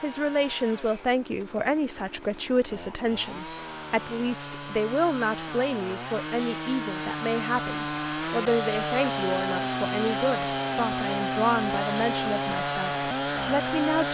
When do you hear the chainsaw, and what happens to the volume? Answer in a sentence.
The chainsaw can be heard from 0.0 to 14.0 s, getting louder.